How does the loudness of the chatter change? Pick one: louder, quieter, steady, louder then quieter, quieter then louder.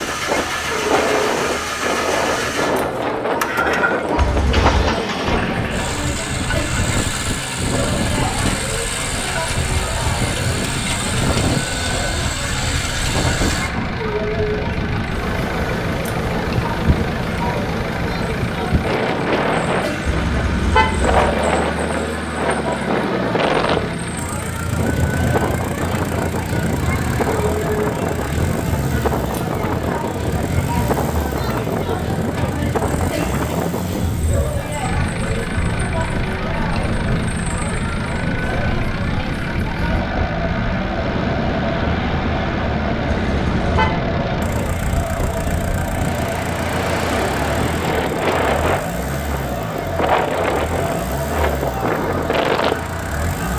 steady.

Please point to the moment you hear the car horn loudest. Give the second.
21 s.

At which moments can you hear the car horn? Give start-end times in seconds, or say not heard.
4.2-5.0, 20.1-21.3, 43.2-44.0.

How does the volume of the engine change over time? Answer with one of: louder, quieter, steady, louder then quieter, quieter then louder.
steady.